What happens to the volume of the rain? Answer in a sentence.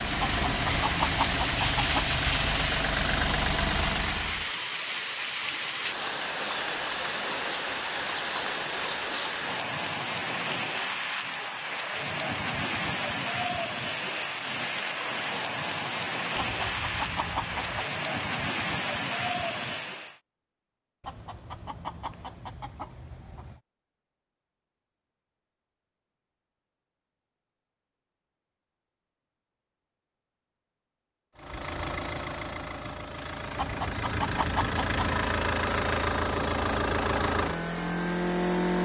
The volume of the rain stays about the same.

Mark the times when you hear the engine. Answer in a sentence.
The engine can be heard from 0.0 to 4.5 s and from 31.4 to 38.8 s.